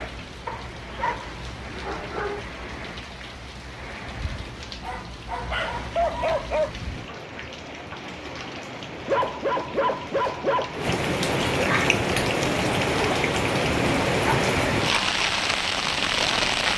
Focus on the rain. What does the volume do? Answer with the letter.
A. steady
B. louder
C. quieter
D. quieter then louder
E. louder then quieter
B.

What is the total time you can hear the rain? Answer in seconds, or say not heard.
17 s.